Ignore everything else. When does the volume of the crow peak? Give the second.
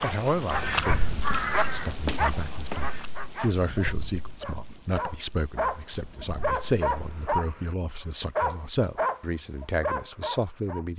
1 s.